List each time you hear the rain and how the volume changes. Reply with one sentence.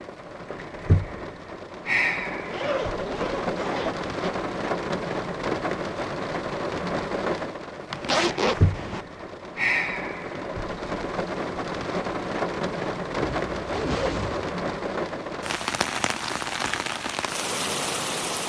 You can hear the rain from 0.0 to 18.4 s, at a steady volume.